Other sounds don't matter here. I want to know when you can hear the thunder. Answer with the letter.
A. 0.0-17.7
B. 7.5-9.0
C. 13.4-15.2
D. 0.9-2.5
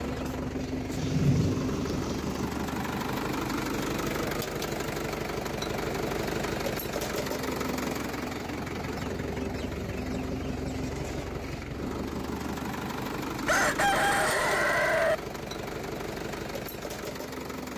D.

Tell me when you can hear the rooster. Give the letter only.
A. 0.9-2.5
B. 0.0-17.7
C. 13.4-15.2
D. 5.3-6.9
C.